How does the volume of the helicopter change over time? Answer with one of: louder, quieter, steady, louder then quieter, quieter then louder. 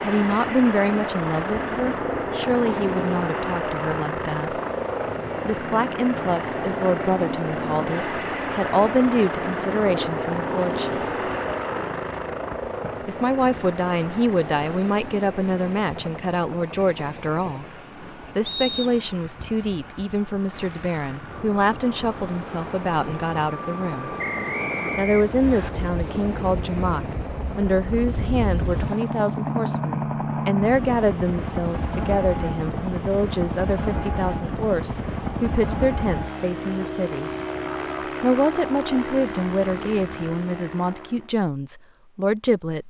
quieter then louder.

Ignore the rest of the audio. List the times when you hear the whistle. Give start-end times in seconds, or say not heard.
18.4-18.9, 24.1-25.7.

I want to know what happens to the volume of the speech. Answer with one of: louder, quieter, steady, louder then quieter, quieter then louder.
steady.